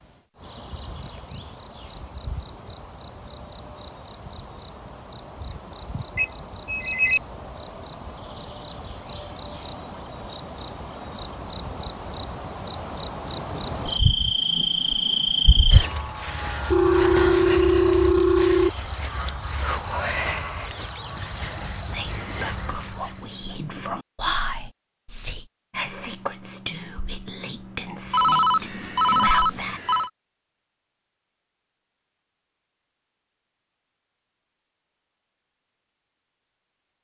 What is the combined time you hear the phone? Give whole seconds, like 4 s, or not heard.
5 s.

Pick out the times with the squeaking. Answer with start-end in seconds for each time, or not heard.
20.7-21.4.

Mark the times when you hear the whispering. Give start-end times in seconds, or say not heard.
21.6-29.8.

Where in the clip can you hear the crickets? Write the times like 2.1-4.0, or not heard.
0.0-23.3.